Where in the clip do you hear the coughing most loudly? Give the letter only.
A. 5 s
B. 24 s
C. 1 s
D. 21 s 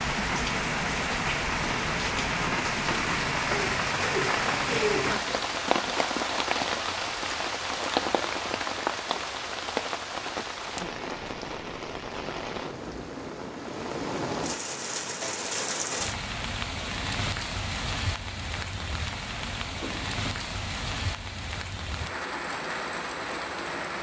A.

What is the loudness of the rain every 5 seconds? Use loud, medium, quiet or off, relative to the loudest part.
loud, loud, medium, medium, medium.